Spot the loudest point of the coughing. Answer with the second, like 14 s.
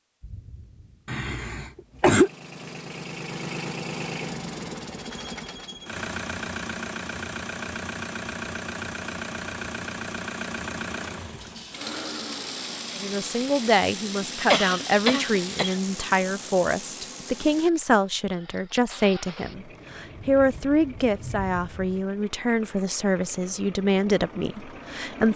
2 s.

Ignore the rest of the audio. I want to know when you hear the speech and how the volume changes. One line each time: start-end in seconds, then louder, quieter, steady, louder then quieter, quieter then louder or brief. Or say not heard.
12.9-25.3 steady.